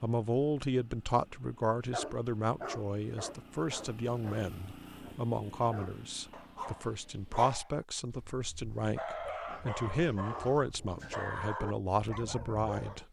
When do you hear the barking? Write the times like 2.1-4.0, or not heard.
1.9-13.0.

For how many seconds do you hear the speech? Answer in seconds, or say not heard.
13 s.